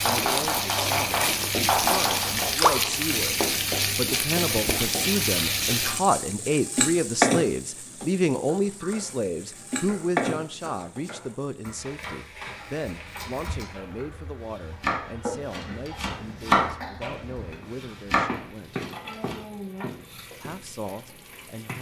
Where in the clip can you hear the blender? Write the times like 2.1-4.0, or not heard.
not heard.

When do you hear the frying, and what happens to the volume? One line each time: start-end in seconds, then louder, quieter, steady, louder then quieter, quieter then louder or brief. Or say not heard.
0.0-21.7 quieter.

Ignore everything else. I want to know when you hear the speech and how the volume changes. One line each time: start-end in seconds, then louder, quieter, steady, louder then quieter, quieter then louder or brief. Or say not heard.
0.0-18.8 louder then quieter
20.4-21.7 brief.